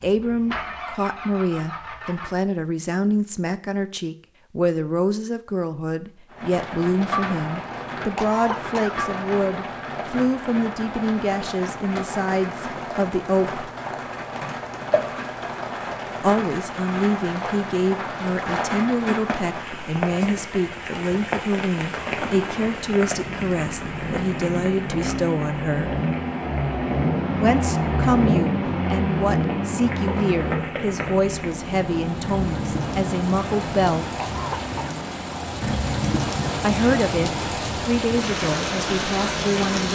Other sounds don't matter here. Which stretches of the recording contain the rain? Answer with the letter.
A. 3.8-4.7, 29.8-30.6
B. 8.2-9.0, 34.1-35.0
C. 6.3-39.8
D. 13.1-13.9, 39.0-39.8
C.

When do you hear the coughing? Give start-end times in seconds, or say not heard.
8.2-9.0, 34.1-35.0.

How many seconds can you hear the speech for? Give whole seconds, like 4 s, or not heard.
33 s.